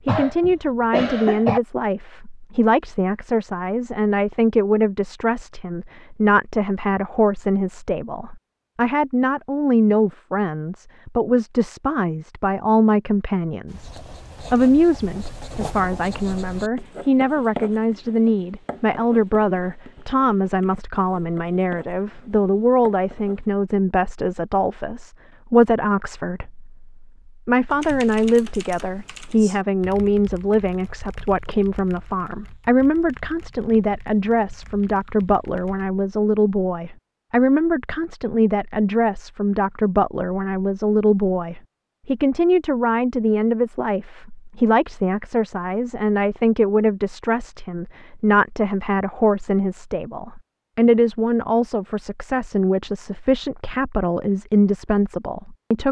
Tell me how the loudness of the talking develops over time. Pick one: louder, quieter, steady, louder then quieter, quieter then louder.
steady.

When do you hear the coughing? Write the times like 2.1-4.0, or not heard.
0.1-1.6.